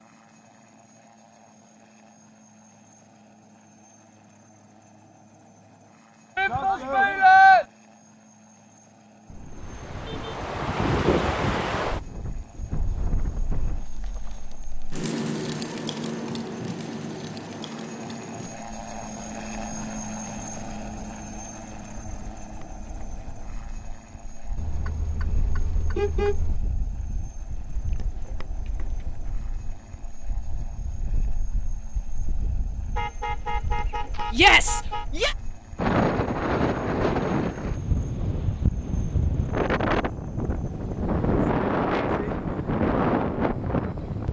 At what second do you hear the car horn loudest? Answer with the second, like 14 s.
26 s.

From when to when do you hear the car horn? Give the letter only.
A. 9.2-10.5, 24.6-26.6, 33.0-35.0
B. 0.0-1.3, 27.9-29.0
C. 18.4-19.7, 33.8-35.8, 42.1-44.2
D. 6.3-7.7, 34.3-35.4
A.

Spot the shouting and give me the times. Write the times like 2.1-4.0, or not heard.
6.3-7.7, 34.3-35.4.